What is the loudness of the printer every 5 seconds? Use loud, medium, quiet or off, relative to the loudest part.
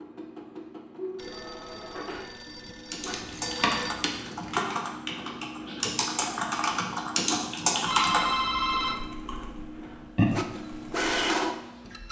medium, medium, loud.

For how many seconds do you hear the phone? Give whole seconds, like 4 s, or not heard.
4 s.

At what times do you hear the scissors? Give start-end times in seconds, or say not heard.
3.1-4.6.